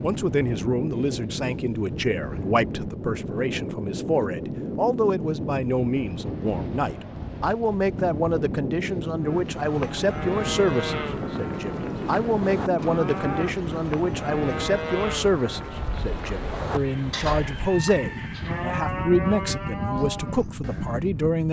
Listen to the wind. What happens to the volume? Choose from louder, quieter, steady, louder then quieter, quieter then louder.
steady.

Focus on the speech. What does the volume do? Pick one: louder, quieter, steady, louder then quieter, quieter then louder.
steady.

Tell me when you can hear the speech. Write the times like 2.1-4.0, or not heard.
0.0-21.4.